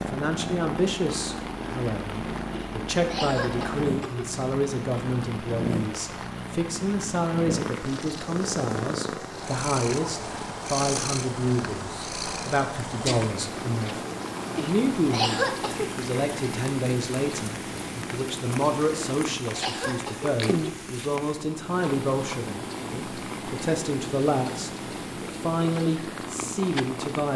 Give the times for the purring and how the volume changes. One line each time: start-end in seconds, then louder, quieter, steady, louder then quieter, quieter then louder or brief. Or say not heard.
0.0-27.3 steady.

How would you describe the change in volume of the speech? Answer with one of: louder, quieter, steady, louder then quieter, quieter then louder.
steady.